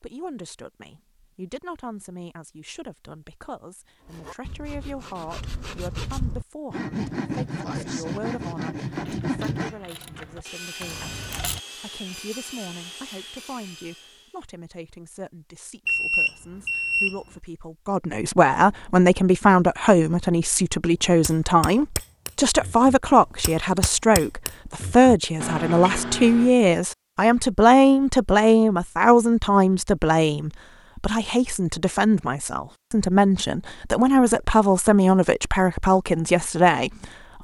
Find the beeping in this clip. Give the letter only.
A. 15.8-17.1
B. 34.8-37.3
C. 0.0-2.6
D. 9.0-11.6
A.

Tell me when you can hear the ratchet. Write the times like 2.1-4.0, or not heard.
9.0-11.6.